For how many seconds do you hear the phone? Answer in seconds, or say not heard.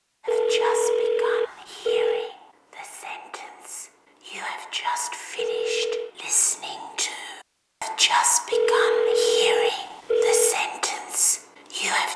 5 s.